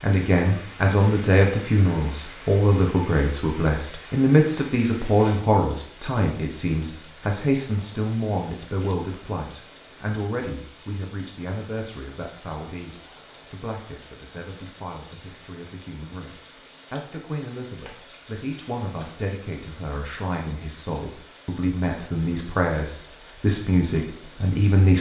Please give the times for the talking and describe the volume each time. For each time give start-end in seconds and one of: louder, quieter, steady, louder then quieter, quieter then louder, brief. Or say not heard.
0.0-24.9 quieter then louder.